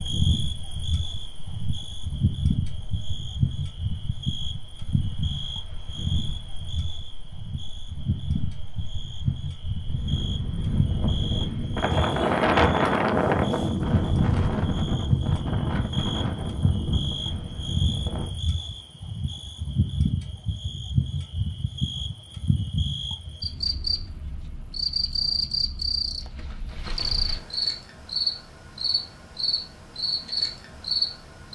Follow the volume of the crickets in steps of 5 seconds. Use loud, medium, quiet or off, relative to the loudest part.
loud, medium, medium, loud, loud, loud, loud.